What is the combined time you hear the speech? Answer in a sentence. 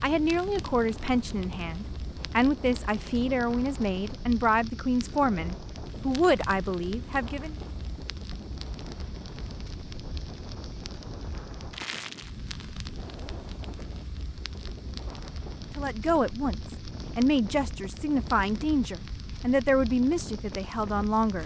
You can hear the speech for 13 seconds altogether.